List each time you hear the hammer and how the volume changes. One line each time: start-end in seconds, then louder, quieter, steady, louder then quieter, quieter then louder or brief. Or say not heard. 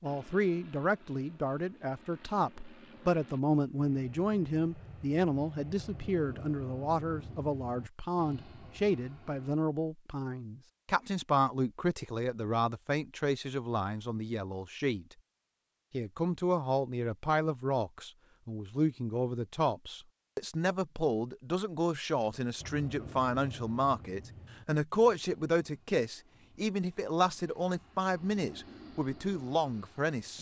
not heard.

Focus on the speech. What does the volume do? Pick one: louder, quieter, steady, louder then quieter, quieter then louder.
steady.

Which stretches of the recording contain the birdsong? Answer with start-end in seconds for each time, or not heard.
not heard.